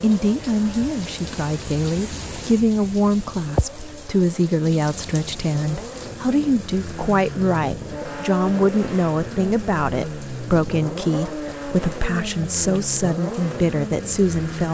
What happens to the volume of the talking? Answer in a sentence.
The loudness of the talking stays about the same.